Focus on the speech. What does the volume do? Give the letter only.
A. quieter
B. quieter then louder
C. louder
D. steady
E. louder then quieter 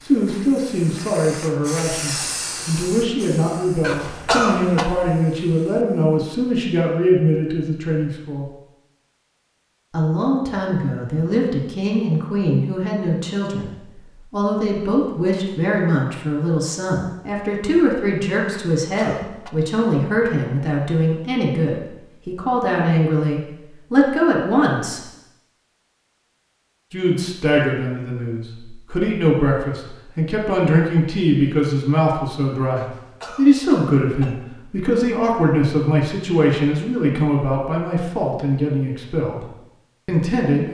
D.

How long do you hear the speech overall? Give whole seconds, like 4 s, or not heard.
37 s.